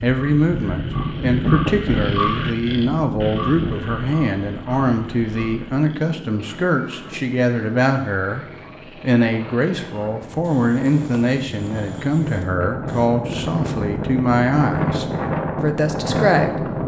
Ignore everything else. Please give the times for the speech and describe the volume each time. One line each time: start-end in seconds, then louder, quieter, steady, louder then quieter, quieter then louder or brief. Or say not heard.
0.0-16.7 steady.